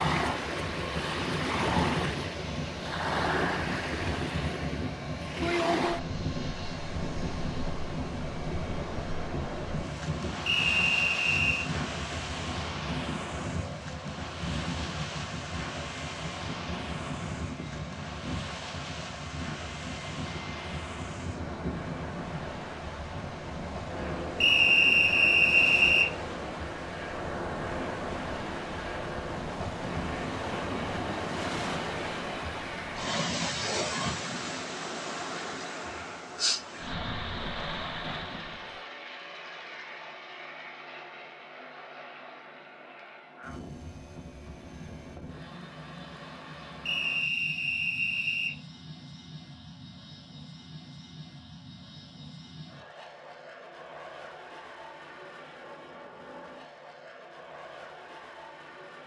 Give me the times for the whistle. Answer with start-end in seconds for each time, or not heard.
10.4-11.7, 24.4-26.1, 46.9-48.5.